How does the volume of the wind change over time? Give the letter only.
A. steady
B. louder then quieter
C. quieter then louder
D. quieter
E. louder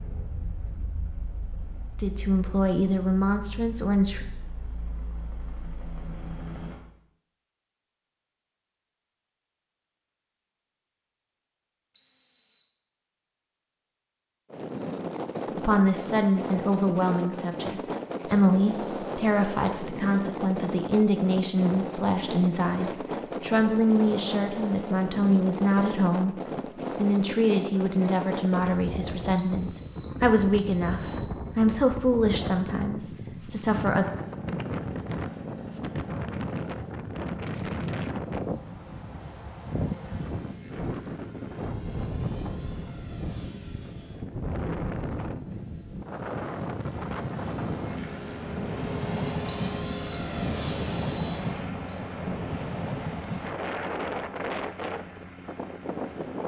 A.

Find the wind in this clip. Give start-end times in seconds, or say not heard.
14.5-56.4.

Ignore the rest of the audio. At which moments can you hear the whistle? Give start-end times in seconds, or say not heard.
11.9-12.7, 29.4-31.4, 49.5-52.0.